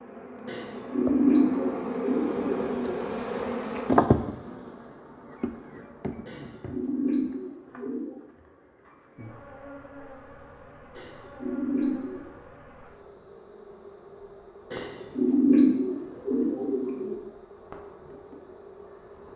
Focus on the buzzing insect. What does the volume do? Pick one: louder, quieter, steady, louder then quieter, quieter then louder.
quieter.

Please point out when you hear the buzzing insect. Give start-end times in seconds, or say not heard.
0.0-19.3.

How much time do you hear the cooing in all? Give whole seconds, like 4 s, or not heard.
8 s.